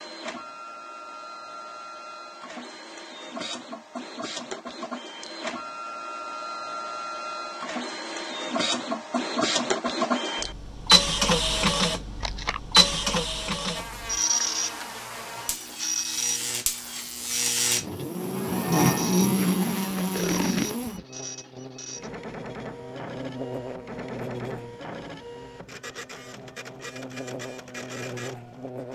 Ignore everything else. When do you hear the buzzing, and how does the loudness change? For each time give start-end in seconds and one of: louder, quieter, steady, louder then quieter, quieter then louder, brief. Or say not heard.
13.7-28.9 louder then quieter.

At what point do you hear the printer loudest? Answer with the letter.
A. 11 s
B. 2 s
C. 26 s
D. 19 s
A.